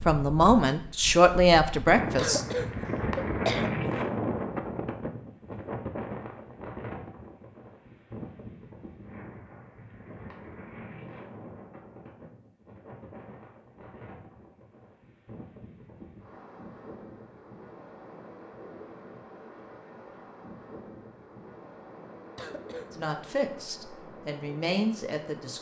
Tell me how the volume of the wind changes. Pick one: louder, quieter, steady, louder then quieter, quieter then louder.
quieter.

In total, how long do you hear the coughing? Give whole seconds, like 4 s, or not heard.
2 s.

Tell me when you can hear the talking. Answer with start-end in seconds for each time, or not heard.
0.1-2.4, 22.9-25.5.